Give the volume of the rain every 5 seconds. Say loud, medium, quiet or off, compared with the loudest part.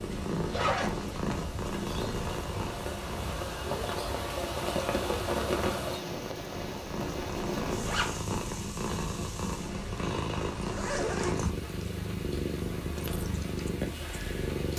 loud, loud, medium.